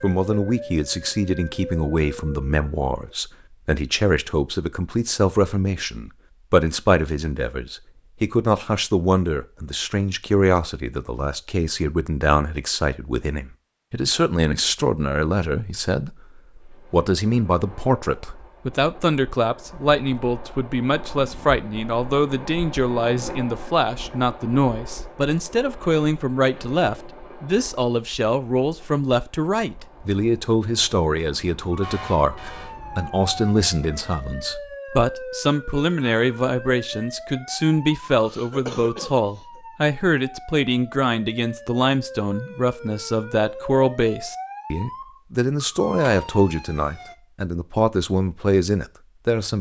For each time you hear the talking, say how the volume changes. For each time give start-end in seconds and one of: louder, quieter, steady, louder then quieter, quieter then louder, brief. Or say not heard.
0.0-49.5 steady.